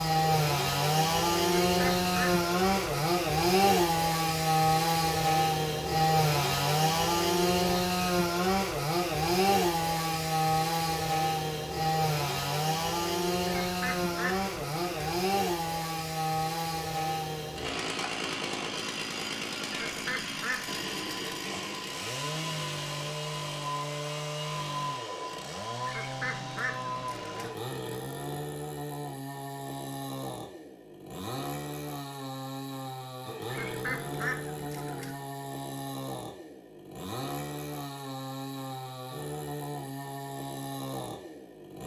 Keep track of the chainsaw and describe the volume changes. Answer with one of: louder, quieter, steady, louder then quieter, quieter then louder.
quieter.